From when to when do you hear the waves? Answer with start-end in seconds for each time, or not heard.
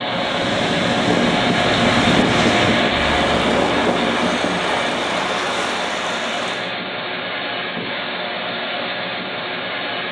0.0-6.7.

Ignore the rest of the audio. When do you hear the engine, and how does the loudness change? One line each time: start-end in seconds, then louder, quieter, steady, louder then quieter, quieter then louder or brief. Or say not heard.
0.0-10.0 quieter.